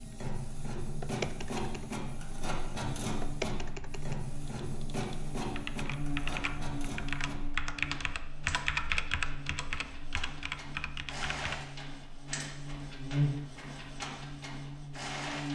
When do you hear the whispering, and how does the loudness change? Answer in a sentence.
The whispering can't be heard in this clip.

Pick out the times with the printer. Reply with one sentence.
The printer can be heard from 0.0 to 15.5 s.